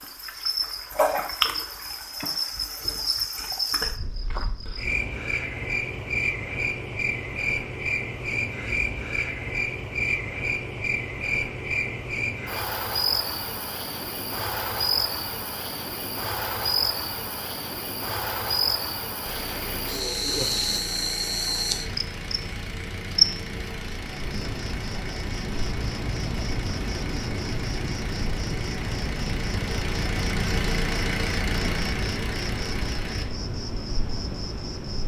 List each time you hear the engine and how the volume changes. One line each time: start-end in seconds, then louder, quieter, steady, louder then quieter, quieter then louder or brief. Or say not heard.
19.2-33.3 louder.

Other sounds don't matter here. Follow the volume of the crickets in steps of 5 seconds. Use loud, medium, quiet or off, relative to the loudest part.
loud, loud, loud, loud, loud, medium, medium.